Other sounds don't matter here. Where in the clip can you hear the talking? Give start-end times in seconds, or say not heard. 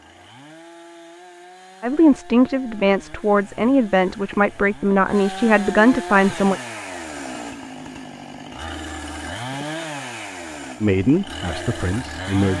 1.8-6.6, 10.8-12.5.